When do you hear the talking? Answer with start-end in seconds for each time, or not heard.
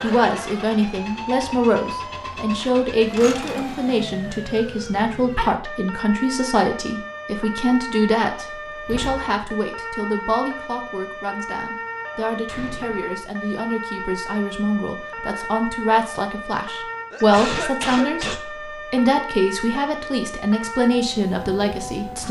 0.0-22.2.